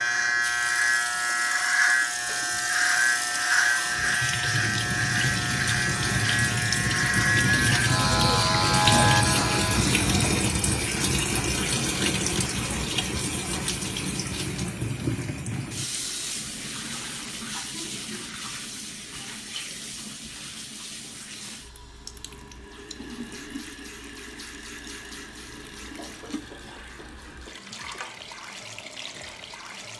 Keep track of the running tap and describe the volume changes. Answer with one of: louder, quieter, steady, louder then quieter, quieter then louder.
louder then quieter.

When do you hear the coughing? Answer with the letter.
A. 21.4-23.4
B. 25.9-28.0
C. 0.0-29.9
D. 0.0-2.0
B.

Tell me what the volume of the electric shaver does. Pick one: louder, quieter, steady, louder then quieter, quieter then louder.
steady.